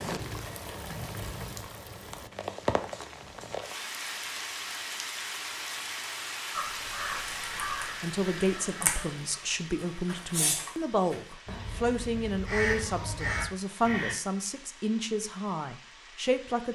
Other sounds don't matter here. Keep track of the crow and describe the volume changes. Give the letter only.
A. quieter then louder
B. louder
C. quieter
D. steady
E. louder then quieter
A.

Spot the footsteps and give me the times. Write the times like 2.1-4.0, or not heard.
not heard.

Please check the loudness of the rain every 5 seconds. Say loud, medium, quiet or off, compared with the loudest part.
loud, loud, quiet, quiet.